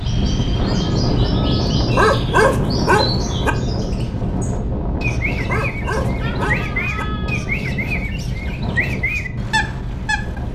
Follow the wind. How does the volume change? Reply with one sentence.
The volume of the wind goes down.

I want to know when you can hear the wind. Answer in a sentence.
You can hear the wind from 0.0 to 10.5 s.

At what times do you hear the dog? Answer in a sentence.
You can hear the dog from 1.9 to 3.5 s and from 5.4 to 7.0 s.